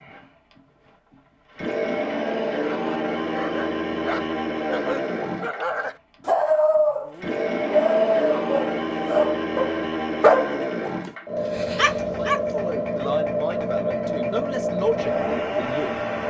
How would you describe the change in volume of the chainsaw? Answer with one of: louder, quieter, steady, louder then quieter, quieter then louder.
steady.